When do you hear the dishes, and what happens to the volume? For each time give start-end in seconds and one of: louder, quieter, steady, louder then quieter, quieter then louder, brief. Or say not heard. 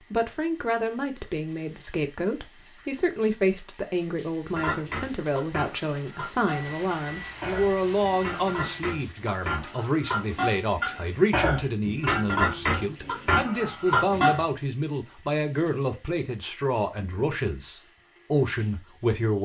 4.5-14.4 louder.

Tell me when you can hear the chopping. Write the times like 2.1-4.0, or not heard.
not heard.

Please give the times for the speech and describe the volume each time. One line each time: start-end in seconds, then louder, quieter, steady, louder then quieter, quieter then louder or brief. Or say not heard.
0.1-19.3 steady.